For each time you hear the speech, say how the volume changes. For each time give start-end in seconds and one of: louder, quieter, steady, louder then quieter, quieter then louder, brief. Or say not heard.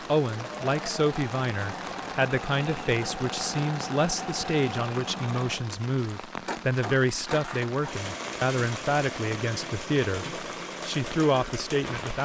0.1-12.1 steady.